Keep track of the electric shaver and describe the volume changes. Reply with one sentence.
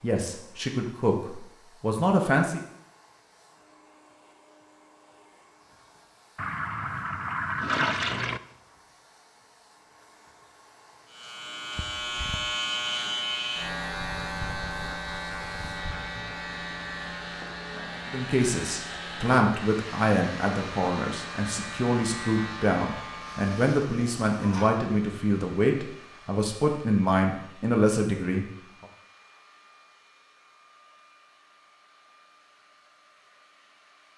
The loudness of the electric shaver goes down.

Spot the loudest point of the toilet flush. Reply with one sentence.
The loudest moment of the toilet flush is at 8 seconds.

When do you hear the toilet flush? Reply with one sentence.
You can hear the toilet flush from 6.3 to 8.4 s, from 11.8 to 12.6 s and from 23.2 to 24.9 s.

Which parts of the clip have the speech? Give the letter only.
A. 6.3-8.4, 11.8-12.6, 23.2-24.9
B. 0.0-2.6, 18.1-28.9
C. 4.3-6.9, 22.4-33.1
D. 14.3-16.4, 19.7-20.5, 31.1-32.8
B.